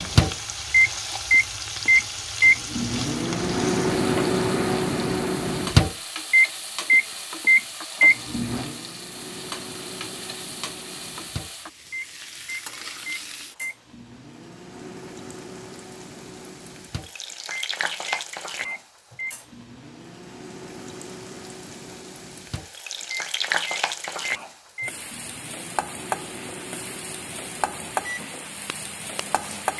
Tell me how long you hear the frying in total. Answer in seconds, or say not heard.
30 s.